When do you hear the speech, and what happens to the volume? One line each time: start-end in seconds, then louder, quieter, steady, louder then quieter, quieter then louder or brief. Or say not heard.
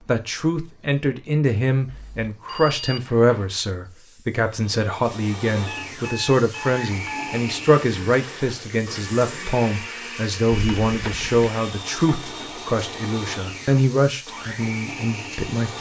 0.1-15.7 steady.